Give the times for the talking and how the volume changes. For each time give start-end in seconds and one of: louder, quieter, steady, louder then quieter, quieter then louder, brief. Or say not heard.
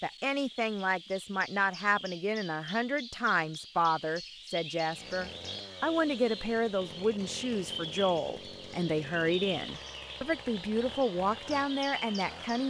0.0-12.6 steady.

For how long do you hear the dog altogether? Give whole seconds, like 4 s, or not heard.
not heard.